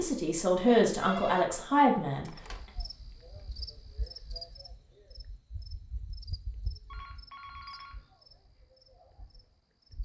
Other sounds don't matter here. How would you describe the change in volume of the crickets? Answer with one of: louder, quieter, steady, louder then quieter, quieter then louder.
quieter.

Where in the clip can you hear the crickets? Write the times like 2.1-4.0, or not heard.
2.4-9.9.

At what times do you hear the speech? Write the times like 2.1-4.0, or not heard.
0.0-2.3.